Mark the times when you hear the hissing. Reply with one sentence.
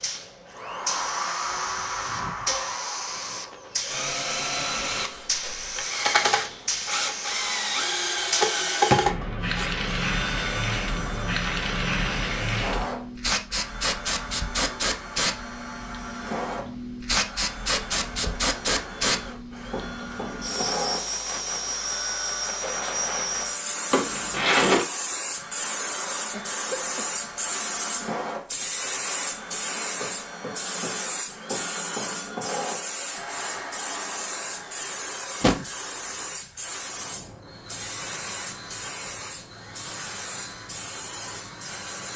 You can hear the hissing from 0.0 to 42.1 s.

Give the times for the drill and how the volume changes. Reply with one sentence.
The drill can be heard from 0.0 to 42.1 s, getting quieter.